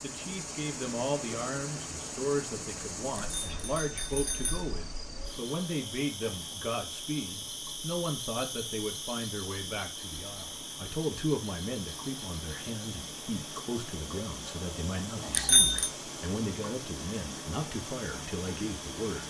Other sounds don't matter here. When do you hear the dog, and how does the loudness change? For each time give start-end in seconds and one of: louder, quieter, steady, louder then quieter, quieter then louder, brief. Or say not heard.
not heard.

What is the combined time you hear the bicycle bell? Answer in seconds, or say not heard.
2 s.